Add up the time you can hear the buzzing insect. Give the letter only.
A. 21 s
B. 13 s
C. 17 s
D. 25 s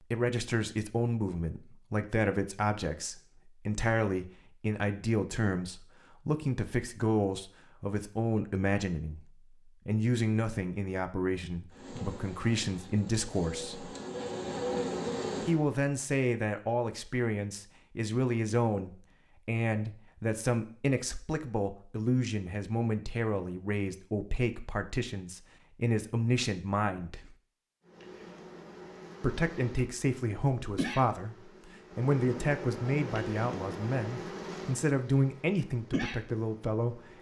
B.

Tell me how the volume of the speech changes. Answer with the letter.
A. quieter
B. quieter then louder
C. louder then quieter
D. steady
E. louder
D.